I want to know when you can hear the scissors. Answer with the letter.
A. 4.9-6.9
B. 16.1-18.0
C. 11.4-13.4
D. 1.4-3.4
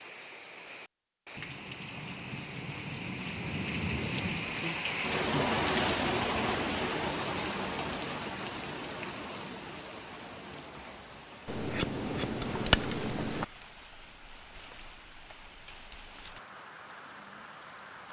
C.